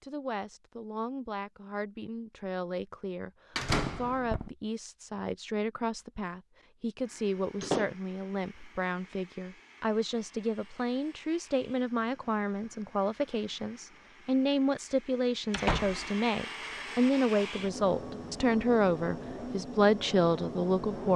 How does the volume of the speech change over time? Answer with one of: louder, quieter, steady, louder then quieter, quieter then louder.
louder.